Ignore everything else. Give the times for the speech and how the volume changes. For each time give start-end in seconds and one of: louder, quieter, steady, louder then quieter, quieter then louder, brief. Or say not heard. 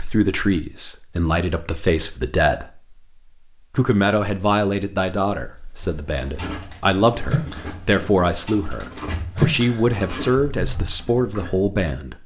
0.0-3.0 brief
3.7-12.2 steady.